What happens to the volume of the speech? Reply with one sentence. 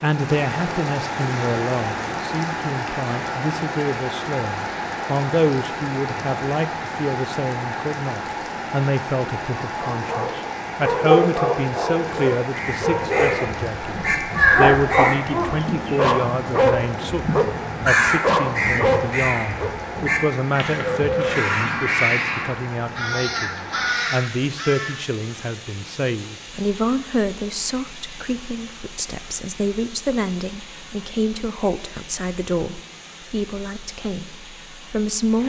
The volume of the speech stays about the same.